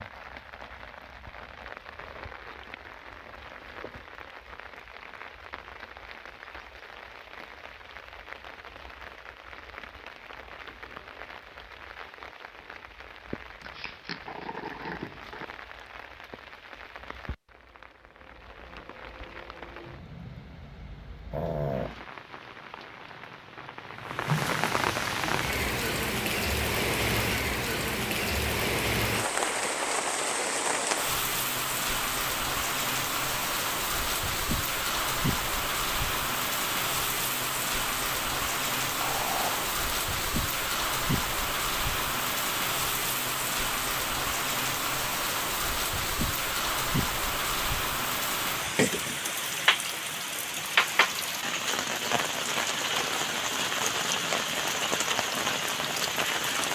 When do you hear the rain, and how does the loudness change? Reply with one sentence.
You can hear the rain from 0.0 to 56.7 s, getting louder.